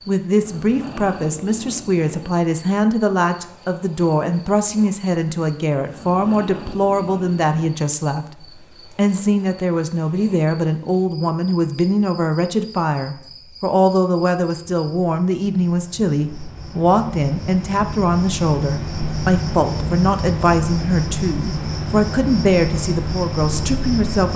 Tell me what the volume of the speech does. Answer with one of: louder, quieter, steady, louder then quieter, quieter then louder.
steady.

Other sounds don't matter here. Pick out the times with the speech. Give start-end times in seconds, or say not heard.
0.1-24.3.